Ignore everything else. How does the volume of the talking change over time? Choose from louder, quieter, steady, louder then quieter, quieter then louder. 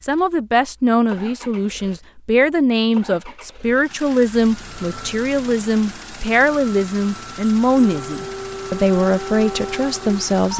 steady.